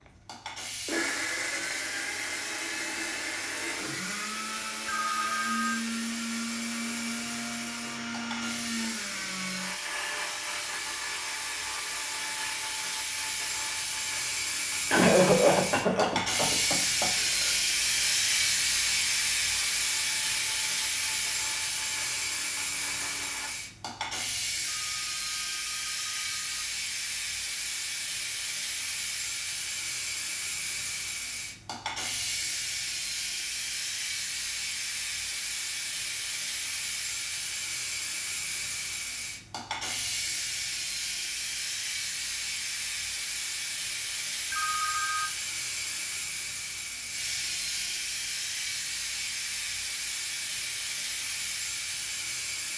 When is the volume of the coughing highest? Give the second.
15 s.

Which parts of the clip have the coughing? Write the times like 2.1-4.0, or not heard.
14.9-17.5.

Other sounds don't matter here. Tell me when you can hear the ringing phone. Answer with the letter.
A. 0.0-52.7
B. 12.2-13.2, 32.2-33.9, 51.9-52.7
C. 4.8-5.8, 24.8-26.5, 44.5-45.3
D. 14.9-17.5
C.